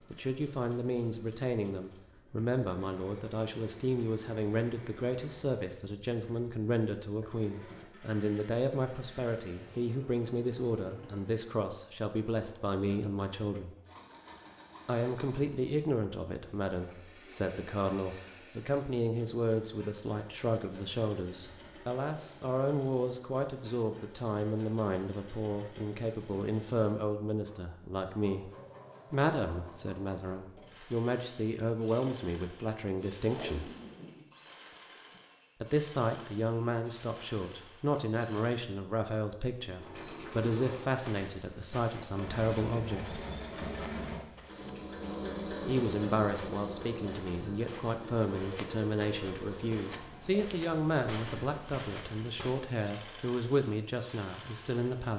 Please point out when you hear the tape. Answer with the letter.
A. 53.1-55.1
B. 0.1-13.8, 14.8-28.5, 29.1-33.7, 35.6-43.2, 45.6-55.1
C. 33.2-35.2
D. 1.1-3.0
C.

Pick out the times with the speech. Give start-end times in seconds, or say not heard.
0.1-13.8, 14.8-28.5, 29.1-33.7, 35.6-43.2, 45.6-55.1.